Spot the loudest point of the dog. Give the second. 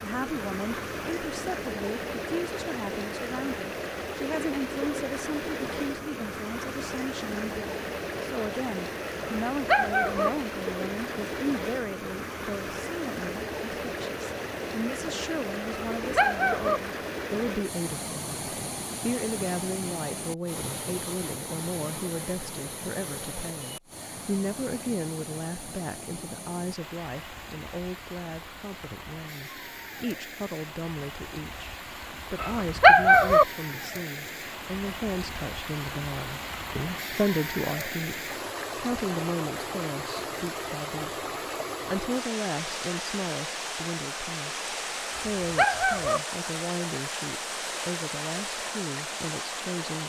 33 s.